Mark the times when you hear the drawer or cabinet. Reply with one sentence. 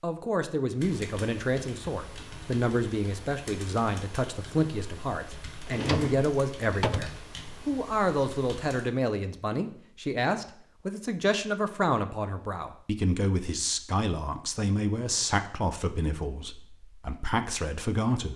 You can hear the drawer or cabinet from 5.7 to 7.2 s.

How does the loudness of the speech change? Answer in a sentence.
The volume of the speech stays about the same.